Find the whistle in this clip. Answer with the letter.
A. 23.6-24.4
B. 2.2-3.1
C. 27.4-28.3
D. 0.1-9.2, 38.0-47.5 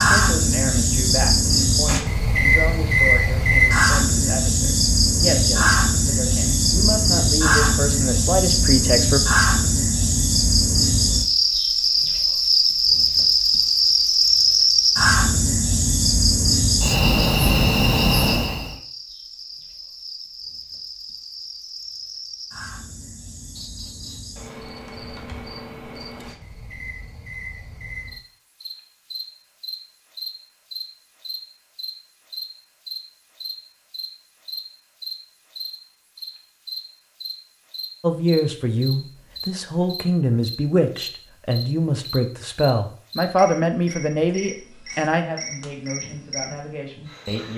A.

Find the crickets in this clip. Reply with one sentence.
The crickets can be heard from 0.0 to 47.5 s.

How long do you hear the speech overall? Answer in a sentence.
You can hear the speech for 19 seconds altogether.